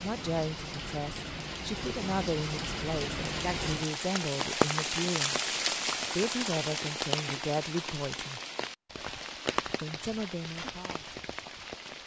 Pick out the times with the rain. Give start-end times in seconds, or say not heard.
0.0-12.0.